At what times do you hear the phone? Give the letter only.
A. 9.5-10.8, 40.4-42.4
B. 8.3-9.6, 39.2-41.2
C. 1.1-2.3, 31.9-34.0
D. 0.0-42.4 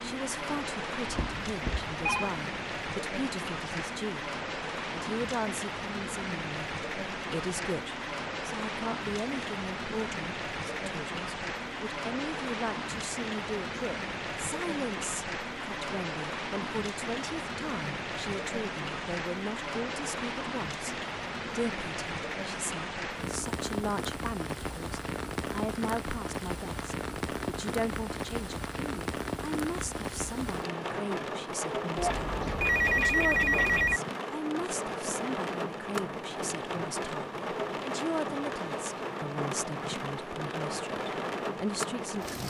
C.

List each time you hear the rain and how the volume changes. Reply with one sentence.
You can hear the rain from 0.0 to 42.4 s, at a steady volume.